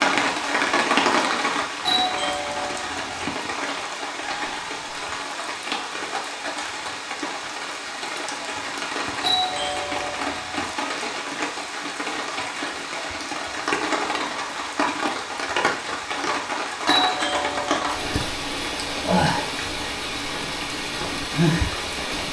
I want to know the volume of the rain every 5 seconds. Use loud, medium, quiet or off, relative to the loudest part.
loud, medium, loud, loud, loud.